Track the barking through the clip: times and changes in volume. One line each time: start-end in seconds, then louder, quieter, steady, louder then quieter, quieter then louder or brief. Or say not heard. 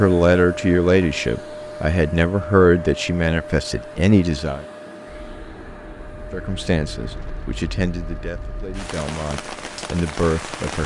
not heard.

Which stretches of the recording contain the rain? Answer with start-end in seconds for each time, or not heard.
5.0-10.8.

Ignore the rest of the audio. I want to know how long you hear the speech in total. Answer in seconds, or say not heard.
9 s.